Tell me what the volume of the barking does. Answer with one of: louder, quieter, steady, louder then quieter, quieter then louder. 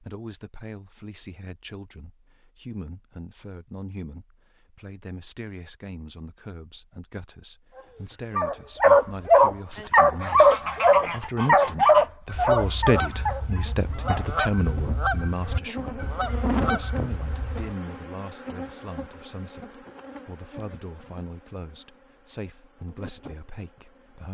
quieter.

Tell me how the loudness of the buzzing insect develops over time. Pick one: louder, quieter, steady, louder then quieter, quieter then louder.
louder then quieter.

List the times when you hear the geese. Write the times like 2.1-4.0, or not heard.
9.7-17.8.